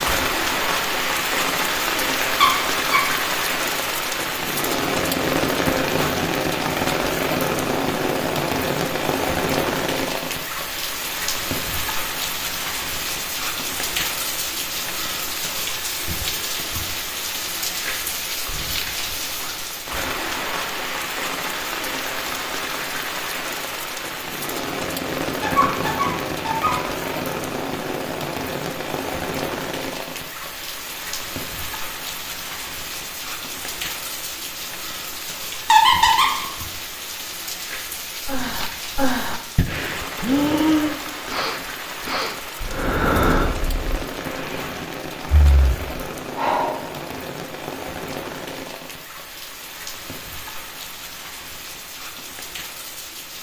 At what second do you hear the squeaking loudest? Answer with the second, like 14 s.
36 s.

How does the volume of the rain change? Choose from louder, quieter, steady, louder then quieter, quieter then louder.
quieter.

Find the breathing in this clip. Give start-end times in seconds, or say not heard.
38.2-46.9.